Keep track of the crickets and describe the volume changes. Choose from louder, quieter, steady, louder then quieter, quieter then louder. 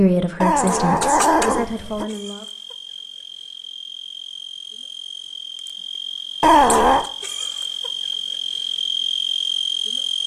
louder.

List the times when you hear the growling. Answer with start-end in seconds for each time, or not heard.
0.4-2.0, 6.4-7.0.